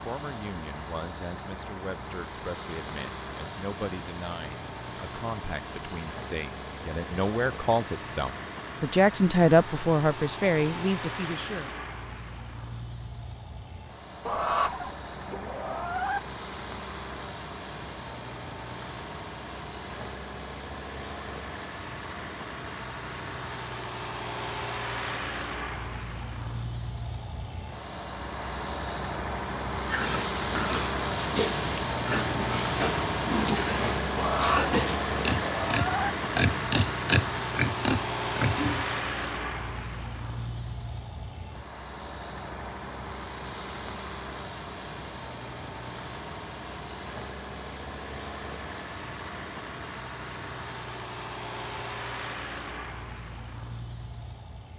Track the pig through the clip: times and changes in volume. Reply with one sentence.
You can hear the pig from 29.9 to 38.9 s, getting louder.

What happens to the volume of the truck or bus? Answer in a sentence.
The volume of the truck or bus goes up, then down.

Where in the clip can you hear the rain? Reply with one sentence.
You can't hear the rain here.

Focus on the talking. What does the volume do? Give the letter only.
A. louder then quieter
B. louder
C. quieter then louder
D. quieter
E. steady
B.